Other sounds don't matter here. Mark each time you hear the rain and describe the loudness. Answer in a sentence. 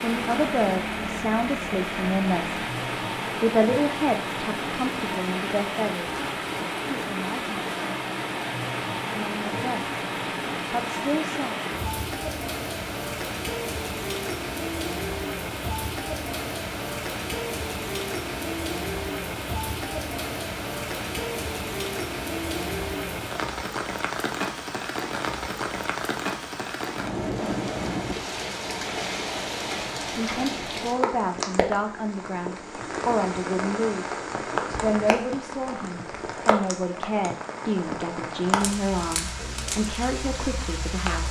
The rain can be heard from 0.0 to 41.2 s, at a steady volume.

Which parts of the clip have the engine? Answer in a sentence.
You can hear the engine from 0.0 to 2.7 s.